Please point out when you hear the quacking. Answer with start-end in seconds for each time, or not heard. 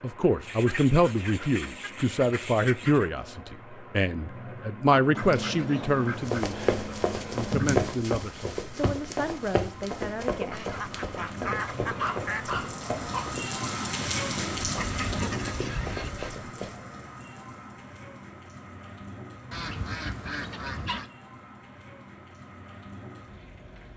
0.5-3.1, 5.1-8.0, 10.5-12.4, 14.6-16.4, 19.5-21.1.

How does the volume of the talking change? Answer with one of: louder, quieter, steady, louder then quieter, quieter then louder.
quieter.